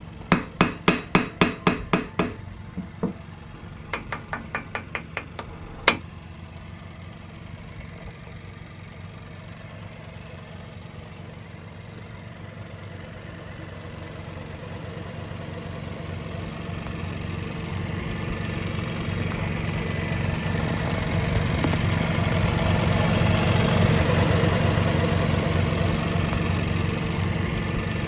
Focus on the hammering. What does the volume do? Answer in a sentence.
The loudness of the hammering goes down.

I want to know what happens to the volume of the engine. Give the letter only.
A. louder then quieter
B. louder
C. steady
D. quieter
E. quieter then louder
B.